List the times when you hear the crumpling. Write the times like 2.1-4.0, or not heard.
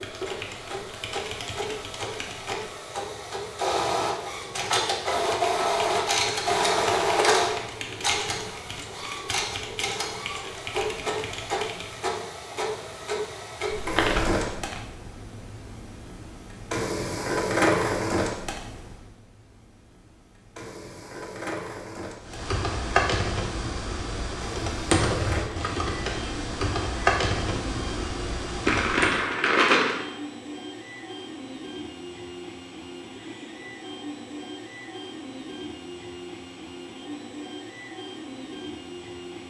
13.7-14.8, 28.6-30.0.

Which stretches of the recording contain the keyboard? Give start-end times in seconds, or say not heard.
0.0-2.8, 5.1-12.0, 22.2-29.1.